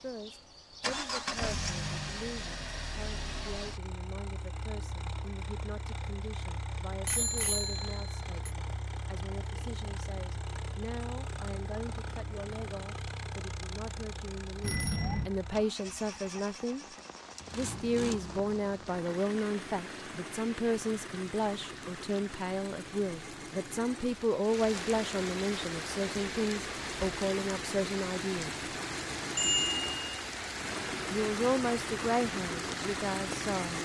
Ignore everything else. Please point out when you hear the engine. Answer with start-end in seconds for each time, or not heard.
0.0-33.8.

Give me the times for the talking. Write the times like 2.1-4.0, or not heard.
0.0-16.9, 17.6-28.6, 31.1-33.8.